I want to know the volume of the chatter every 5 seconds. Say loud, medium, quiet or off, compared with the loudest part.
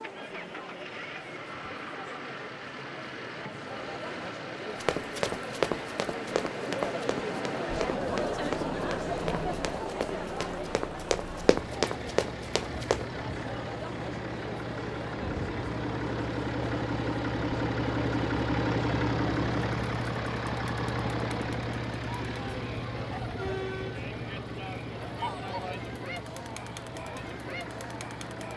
medium, loud, medium, medium, medium, medium.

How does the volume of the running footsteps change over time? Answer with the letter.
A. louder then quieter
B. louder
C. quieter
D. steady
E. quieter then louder
E.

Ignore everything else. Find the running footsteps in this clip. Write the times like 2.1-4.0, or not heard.
4.8-13.1.